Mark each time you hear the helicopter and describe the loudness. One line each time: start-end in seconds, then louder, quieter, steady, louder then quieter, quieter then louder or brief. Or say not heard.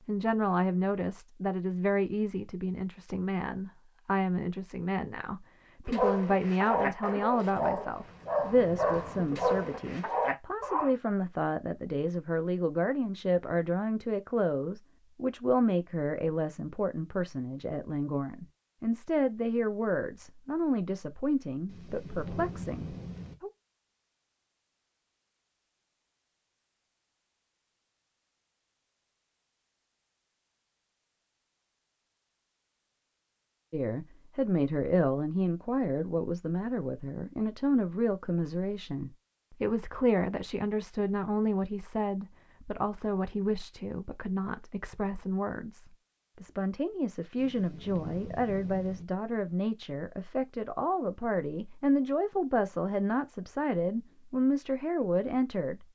not heard.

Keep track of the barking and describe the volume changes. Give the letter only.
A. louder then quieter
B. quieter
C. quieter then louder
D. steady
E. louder
D.